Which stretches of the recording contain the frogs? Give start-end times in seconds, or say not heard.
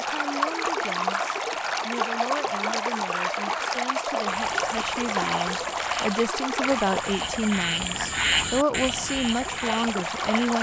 0.0-10.5.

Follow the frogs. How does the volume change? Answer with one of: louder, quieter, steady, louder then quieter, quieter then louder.
louder.